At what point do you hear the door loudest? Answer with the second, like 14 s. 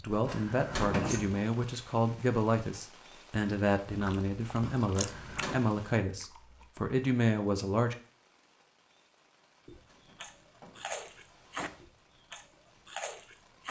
1 s.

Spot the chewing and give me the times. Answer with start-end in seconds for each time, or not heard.
3.9-6.7, 9.7-13.6.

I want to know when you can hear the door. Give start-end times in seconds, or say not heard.
0.2-1.4, 4.9-5.7, 9.4-11.8.